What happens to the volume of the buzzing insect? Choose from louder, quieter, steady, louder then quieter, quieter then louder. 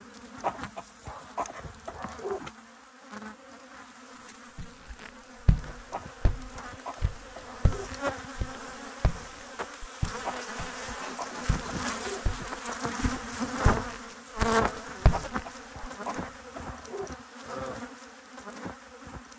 louder then quieter.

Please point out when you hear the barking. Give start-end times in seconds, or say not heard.
0.4-2.4, 5.8-7.9, 10.2-12.2, 15.1-17.1.